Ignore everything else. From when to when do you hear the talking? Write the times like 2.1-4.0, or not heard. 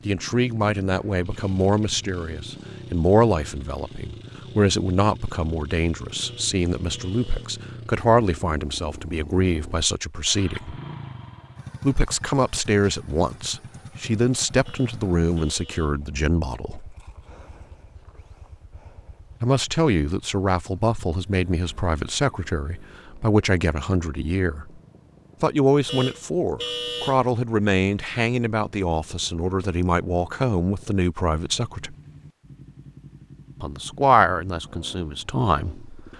0.1-10.8, 11.8-16.9, 19.4-24.7, 25.4-31.9, 33.6-36.1.